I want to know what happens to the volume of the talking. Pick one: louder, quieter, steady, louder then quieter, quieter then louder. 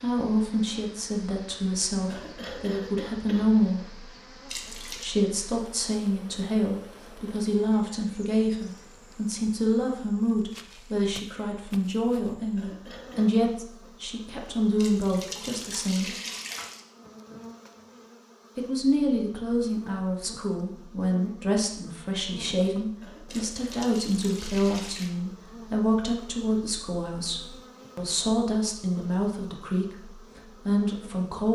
steady.